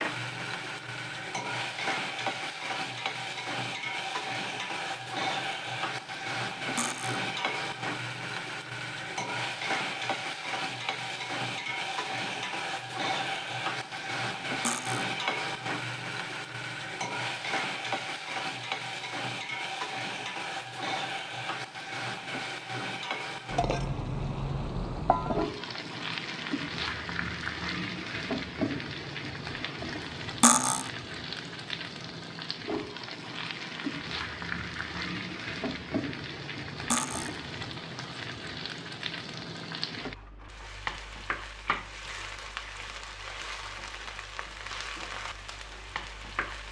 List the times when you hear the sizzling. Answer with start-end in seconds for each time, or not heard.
0.0-46.6.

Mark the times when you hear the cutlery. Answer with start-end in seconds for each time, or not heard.
6.8-7.2, 14.6-15.1, 30.4-30.9, 36.9-37.4.